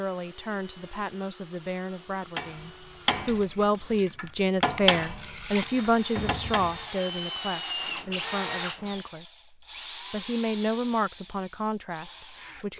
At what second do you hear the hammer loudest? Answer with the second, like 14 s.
5 s.